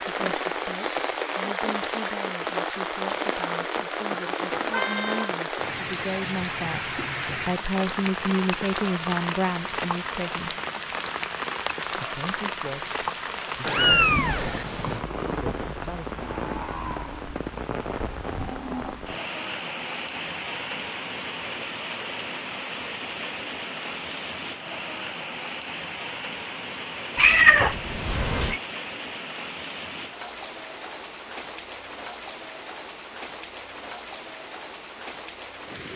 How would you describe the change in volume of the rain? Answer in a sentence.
The loudness of the rain goes down.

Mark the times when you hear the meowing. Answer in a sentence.
You can hear the meowing from 4.7 to 5.3 s, from 13.6 to 15.0 s and from 27.1 to 28.6 s.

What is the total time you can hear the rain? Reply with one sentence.
The rain can be heard for 36 seconds in total.